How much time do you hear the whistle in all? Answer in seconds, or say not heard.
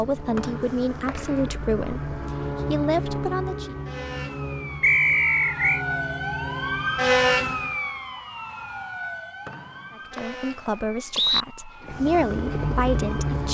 4 s.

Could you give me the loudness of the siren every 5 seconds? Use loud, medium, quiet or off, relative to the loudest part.
quiet, loud, quiet.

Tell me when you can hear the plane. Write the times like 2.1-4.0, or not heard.
0.0-7.8, 11.8-13.4.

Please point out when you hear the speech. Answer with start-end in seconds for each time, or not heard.
0.0-3.8, 9.9-13.4.